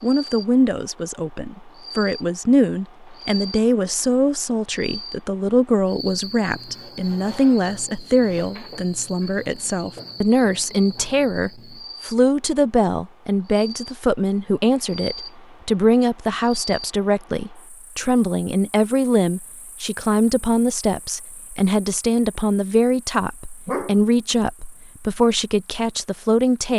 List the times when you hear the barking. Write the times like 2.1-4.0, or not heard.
23.6-24.4.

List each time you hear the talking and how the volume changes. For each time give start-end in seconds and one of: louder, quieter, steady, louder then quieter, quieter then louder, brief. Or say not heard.
0.0-26.7 steady.